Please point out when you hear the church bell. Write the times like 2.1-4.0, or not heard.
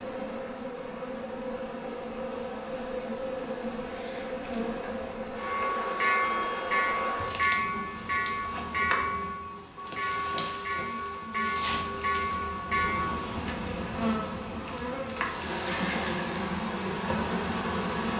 5.3-13.3.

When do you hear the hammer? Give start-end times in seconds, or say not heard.
not heard.